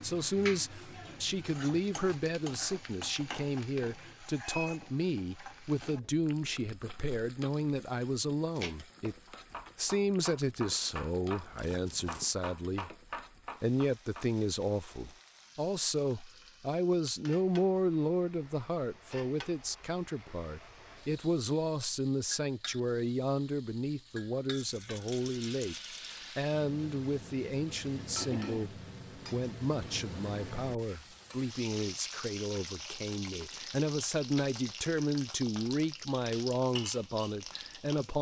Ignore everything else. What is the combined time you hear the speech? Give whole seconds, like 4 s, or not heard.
36 s.